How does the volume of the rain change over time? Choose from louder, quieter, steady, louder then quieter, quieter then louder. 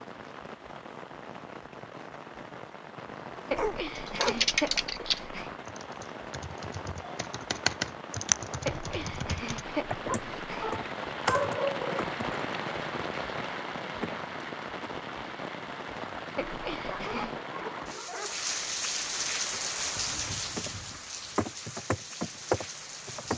louder.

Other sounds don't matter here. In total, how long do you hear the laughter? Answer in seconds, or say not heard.
5 s.